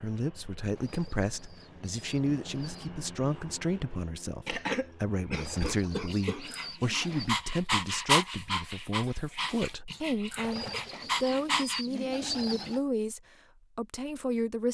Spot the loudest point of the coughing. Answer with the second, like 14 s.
5 s.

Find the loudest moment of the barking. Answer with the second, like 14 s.
8 s.